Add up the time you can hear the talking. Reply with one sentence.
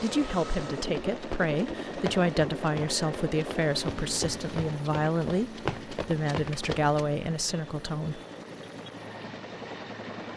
You can hear the talking for 8 seconds altogether.